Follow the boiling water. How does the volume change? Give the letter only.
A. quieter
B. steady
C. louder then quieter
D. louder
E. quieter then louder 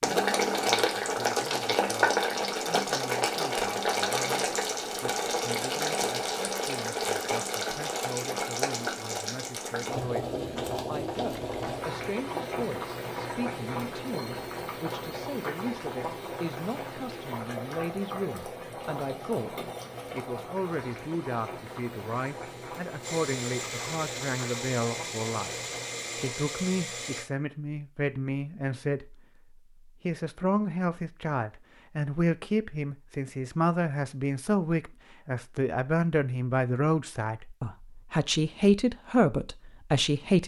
A.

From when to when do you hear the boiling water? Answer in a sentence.
You can hear the boiling water from 0.0 to 26.4 s.